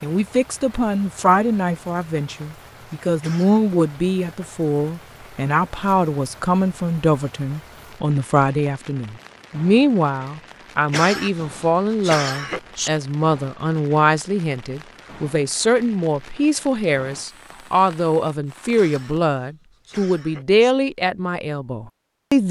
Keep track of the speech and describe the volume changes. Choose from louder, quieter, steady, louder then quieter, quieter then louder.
steady.